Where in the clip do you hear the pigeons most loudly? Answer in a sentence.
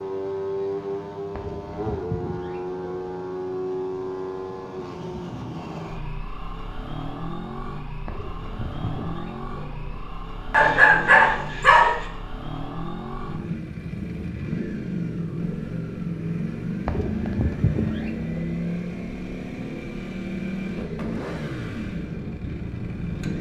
The loudest moment of the pigeons is at 18 seconds.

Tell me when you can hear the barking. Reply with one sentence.
You can hear the barking from 10.5 to 12.1 s.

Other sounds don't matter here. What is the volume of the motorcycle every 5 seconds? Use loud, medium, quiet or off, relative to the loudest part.
loud, medium, loud, loud, loud.